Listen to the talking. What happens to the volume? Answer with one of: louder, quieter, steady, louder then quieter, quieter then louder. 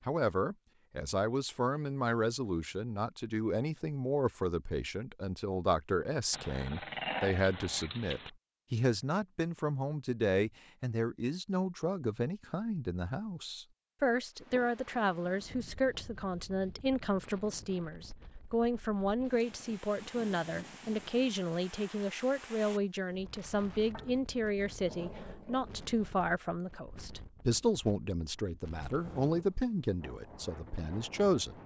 steady.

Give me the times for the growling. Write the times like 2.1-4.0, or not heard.
6.3-8.3, 23.9-26.1.